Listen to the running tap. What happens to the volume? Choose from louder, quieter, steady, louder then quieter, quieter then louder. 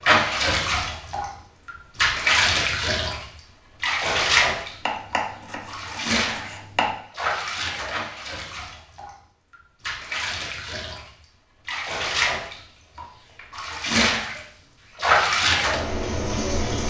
quieter then louder.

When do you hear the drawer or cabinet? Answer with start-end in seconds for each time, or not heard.
not heard.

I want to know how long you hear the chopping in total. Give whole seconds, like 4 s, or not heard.
2 s.